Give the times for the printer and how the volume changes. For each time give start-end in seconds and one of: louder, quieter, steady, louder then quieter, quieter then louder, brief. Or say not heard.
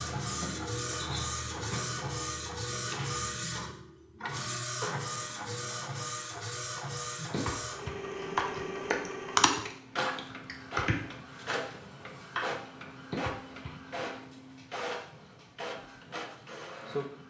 0.0-17.2 quieter.